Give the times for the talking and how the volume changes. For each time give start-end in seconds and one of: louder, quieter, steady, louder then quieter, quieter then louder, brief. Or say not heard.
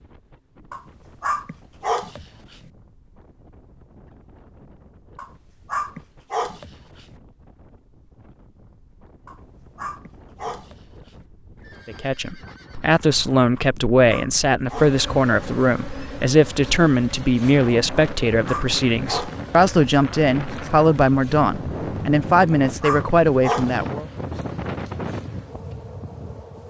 11.8-24.1 steady.